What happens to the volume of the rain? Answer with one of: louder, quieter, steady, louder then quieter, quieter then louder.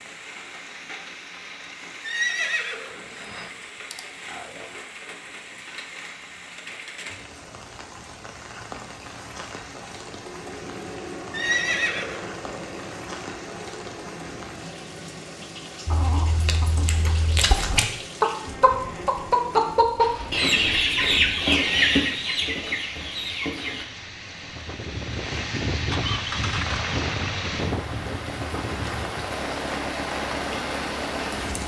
louder.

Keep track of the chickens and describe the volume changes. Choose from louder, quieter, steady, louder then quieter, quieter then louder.
louder then quieter.